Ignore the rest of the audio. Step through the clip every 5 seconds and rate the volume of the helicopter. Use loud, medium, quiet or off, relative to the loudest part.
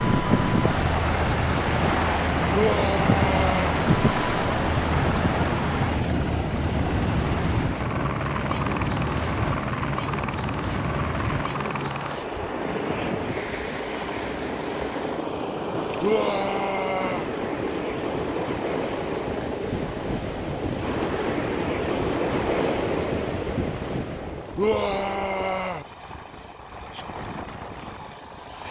loud, loud, loud, loud, medium, medium.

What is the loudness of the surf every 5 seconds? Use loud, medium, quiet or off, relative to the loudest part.
loud, loud, medium, medium, loud, off.